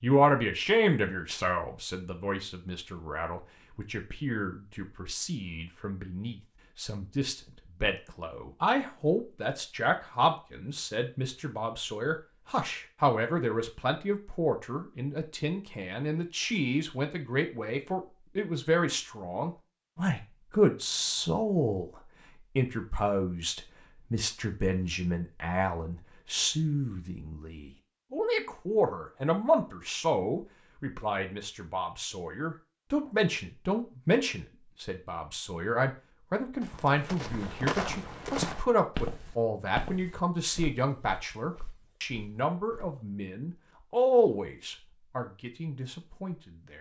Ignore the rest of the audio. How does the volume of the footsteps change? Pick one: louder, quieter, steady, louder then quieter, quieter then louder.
quieter.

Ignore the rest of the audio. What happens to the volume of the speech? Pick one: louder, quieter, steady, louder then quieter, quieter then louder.
steady.